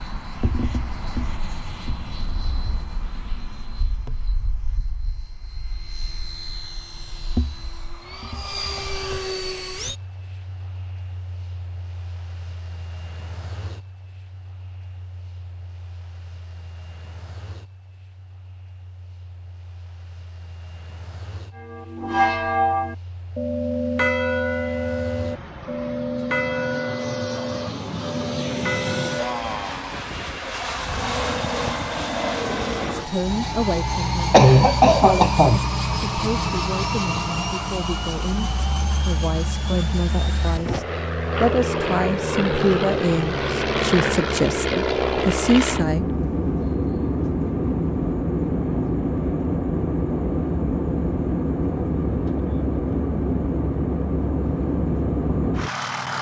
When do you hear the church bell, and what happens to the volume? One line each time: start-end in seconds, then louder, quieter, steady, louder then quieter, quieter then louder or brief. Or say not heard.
21.6-29.6 quieter.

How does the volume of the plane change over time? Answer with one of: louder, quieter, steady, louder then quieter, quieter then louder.
quieter then louder.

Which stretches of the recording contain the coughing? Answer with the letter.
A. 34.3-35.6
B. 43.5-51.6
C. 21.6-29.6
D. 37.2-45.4
A.